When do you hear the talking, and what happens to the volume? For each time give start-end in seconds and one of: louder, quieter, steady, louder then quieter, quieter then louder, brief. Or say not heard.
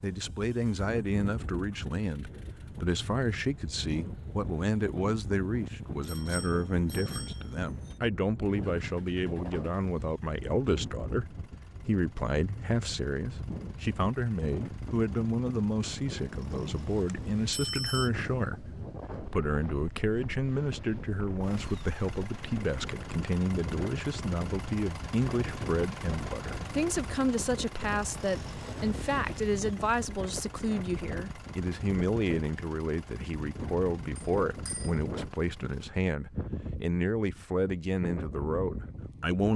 0.0-39.5 steady.